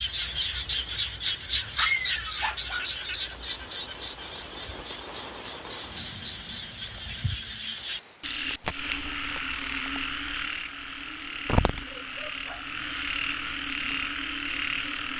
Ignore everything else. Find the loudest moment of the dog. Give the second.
2 s.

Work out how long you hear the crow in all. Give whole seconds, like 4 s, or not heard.
not heard.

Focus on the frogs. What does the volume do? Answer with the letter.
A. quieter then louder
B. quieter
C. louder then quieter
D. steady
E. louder
A.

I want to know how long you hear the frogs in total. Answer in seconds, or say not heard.
15 s.